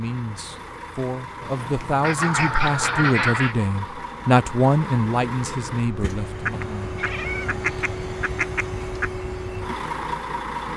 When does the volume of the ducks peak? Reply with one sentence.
The volume of the ducks peaks at 3 seconds.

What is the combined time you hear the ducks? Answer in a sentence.
You can hear the ducks for 4 seconds altogether.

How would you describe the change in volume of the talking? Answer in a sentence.
The volume of the talking goes up, then down.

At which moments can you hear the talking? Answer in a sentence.
The talking can be heard from 0.0 to 7.0 s.